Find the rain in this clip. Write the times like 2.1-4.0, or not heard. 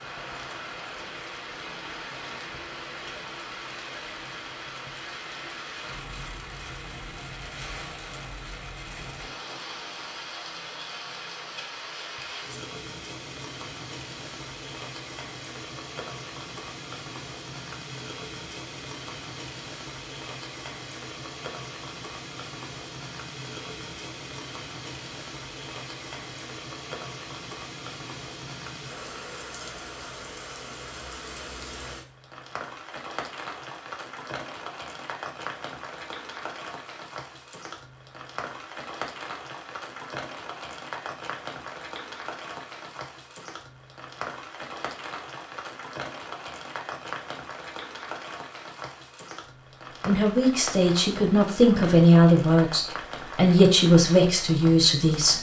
0.0-55.3.